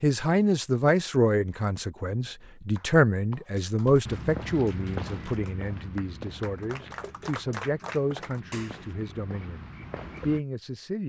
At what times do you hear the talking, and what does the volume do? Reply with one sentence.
You can hear the talking from 0.0 to 11.0 s, getting quieter.